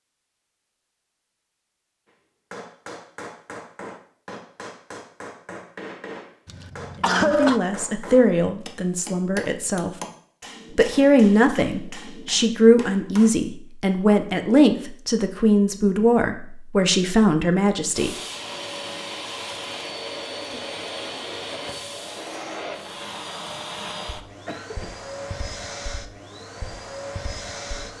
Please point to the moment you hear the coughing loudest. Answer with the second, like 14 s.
7 s.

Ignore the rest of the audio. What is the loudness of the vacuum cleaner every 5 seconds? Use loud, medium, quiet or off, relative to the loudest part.
off, off, off, loud, loud, loud.